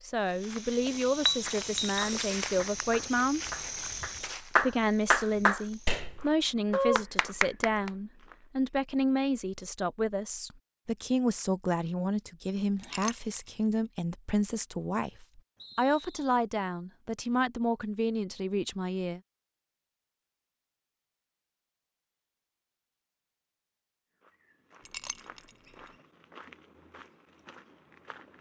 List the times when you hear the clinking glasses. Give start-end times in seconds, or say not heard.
1.2-2.0, 12.8-13.5, 24.9-25.6.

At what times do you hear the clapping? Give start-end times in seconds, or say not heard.
1.4-7.9.